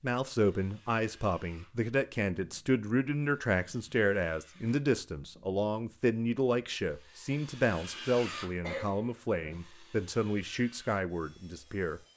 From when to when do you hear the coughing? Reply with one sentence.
The coughing can be heard from 8.6 to 9.6 s.